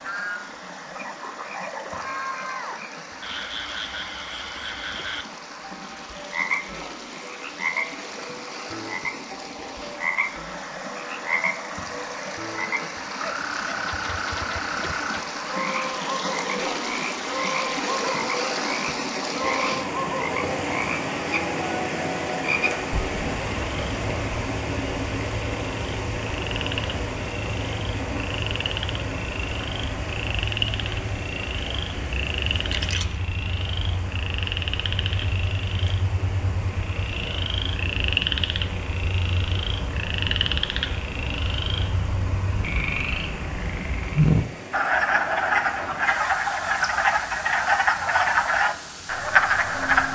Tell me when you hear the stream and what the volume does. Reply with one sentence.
You can hear the stream from 0.0 to 50.0 s, getting louder then quieter.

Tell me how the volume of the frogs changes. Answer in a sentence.
The volume of the frogs goes up.